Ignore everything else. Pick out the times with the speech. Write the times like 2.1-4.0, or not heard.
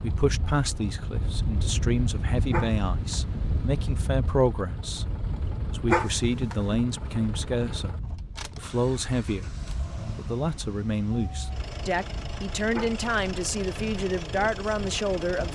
0.0-5.0, 5.7-9.5, 10.2-15.5.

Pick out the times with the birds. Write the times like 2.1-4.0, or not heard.
not heard.